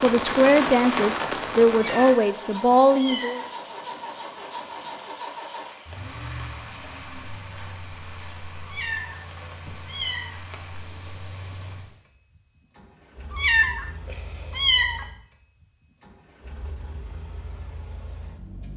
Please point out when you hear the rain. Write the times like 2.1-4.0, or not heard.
0.0-12.1.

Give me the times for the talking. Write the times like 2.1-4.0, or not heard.
0.0-3.4.